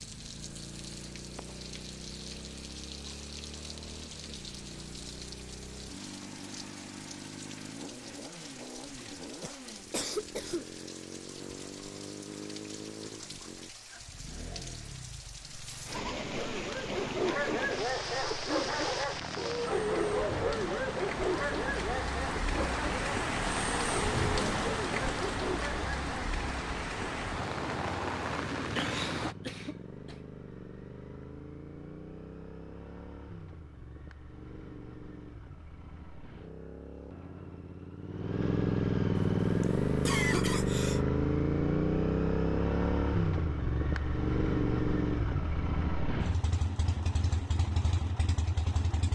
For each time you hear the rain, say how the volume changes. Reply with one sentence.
The rain can be heard from 0.0 to 29.4 s, getting louder.